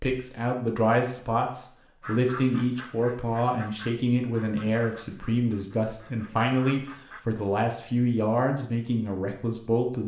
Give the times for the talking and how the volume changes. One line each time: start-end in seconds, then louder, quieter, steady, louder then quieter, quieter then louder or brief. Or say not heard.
0.0-10.0 steady.